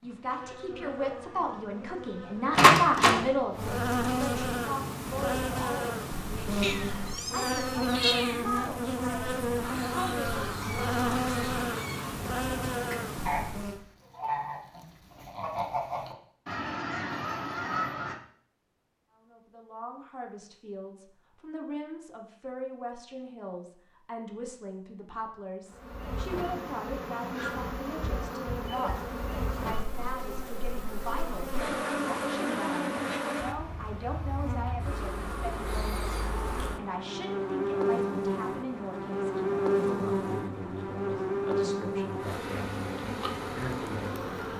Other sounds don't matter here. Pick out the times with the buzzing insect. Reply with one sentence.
The buzzing insect can be heard from 0.0 to 13.8 s and from 25.7 to 44.5 s.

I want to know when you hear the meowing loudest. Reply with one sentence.
The volume of the meowing peaks at 8 seconds.